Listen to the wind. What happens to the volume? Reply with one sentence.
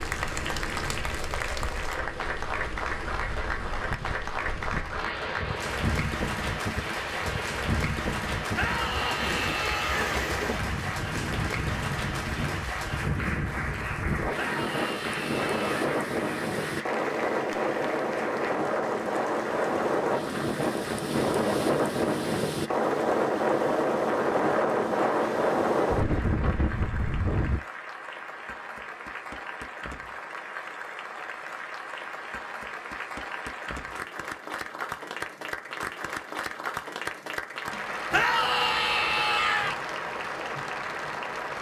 The loudness of the wind goes up.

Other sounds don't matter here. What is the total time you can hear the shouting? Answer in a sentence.
You can hear the shouting for 5 seconds altogether.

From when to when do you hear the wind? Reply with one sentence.
The wind can be heard from 0.0 to 27.6 s.